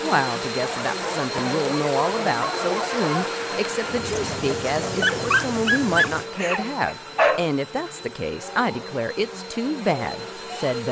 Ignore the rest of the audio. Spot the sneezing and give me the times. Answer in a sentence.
You can't hear the sneezing here.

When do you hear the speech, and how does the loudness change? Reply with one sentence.
The speech can be heard from 0.0 to 10.8 s, at a steady volume.